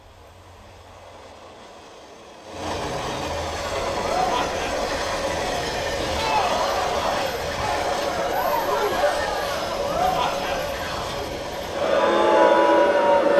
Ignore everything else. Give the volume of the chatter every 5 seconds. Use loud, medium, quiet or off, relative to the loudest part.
medium, medium, loud.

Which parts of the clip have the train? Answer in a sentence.
You can hear the train from 0.0 to 13.3 s.